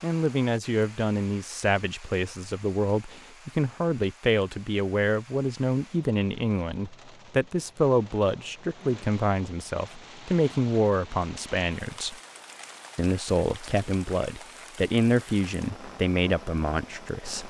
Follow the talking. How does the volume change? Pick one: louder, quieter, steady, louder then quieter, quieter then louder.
steady.